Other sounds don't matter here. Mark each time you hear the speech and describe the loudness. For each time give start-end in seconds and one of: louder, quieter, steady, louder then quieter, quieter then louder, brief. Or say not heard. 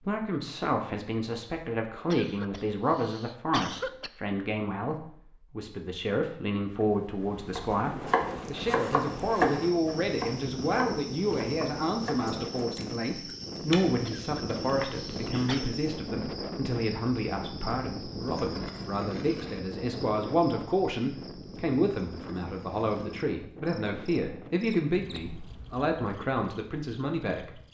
0.1-27.6 steady.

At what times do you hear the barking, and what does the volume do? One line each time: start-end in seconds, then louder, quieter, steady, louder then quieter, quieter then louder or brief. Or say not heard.
not heard.